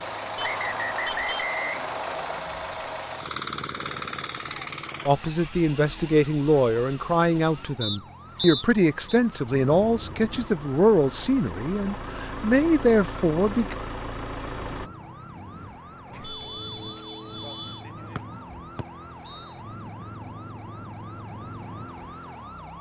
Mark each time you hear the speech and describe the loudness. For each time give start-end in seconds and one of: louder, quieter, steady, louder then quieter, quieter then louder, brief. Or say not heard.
5.0-13.8 steady.